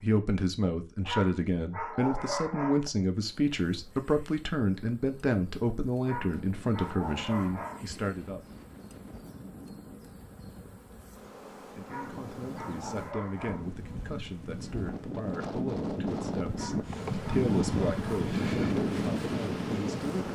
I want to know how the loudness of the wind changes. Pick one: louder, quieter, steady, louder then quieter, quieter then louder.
louder.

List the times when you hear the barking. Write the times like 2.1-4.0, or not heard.
1.1-2.9, 6.0-7.8, 11.8-13.7, 16.6-18.4.